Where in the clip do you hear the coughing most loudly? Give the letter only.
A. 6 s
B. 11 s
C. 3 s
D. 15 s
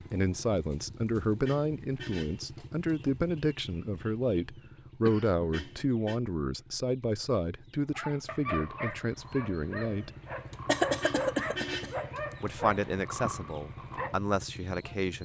B.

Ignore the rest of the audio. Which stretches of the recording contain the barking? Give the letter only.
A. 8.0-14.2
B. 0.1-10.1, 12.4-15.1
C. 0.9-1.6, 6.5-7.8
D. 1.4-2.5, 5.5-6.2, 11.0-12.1
A.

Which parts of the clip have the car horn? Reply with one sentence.
The car horn can be heard from 1.4 to 2.5 s, from 5.5 to 6.2 s and from 11.0 to 12.1 s.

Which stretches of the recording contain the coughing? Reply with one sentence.
You can hear the coughing from 5.0 to 5.8 s and from 10.7 to 11.9 s.